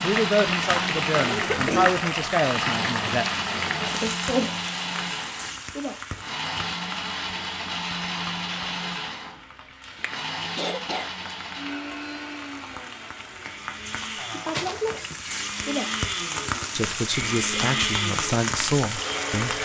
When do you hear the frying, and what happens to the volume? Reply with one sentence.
The frying can be heard from 0.0 to 19.6 s, getting quieter then louder.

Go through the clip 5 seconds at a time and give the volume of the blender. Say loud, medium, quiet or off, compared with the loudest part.
loud, loud, medium, loud.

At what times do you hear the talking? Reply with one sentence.
You can hear the talking from 0.0 to 3.2 s and from 16.7 to 19.6 s.